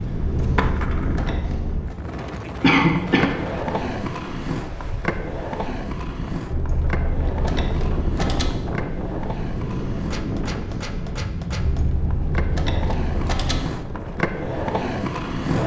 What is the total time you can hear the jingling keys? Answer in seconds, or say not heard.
6 s.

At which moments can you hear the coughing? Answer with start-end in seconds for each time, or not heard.
2.2-3.3.